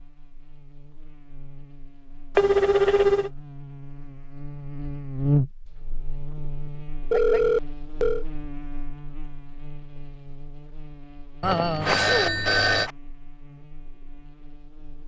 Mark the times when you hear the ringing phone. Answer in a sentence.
The ringing phone can be heard from 2.4 to 3.3 s, from 7.1 to 8.2 s and from 11.4 to 12.9 s.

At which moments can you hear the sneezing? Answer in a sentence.
You can hear the sneezing from 11.8 to 12.9 s.